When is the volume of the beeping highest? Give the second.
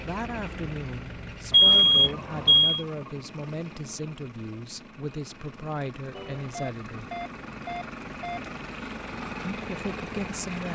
2 s.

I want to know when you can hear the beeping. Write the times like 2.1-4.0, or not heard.
1.5-2.9, 6.1-8.6.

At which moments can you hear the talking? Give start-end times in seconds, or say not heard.
0.0-7.1, 9.5-10.7.